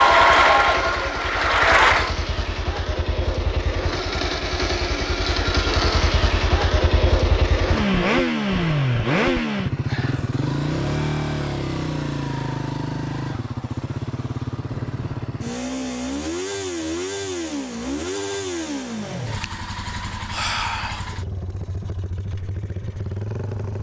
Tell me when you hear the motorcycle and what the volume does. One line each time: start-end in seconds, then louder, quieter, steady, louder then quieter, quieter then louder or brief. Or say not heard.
0.0-23.7 louder then quieter.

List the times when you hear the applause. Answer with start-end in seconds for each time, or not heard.
0.0-2.1.